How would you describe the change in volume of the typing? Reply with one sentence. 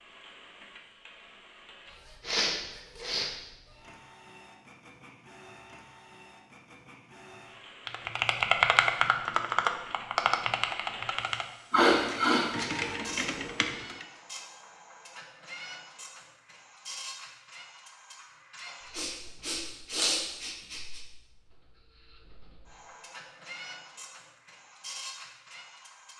The loudness of the typing goes down, then up.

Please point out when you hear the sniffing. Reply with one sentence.
The sniffing can be heard from 2.2 to 3.3 s, from 11.7 to 12.5 s and from 18.9 to 21.0 s.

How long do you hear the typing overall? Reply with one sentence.
The typing can be heard for 6 seconds in total.